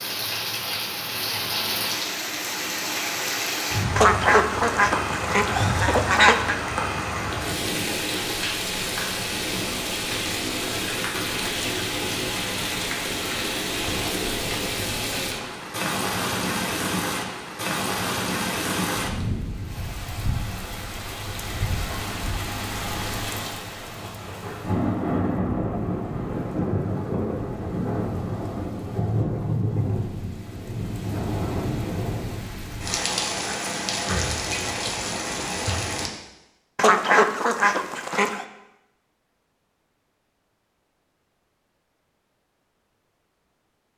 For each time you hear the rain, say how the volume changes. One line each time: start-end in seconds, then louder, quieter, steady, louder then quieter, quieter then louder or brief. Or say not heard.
0.0-36.1 steady.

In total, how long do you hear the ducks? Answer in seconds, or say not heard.
4 s.